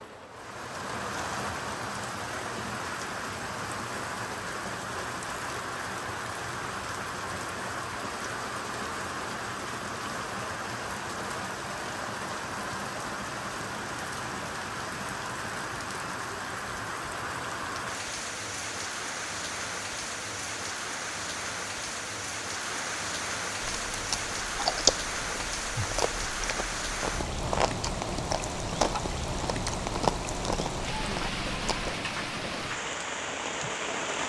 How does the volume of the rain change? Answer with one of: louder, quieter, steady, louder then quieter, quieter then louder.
steady.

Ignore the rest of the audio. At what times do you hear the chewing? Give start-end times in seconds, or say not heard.
23.6-31.9.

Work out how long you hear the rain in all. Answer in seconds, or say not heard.
34 s.